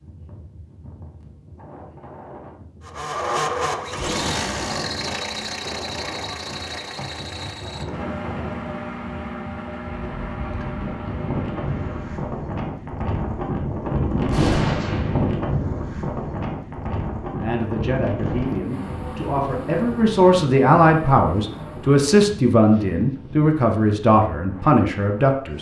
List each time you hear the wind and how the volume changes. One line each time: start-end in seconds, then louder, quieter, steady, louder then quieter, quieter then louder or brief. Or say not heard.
0.0-25.5 louder then quieter.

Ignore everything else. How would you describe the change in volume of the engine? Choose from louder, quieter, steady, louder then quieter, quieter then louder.
quieter.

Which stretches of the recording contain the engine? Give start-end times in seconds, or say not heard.
2.9-12.3.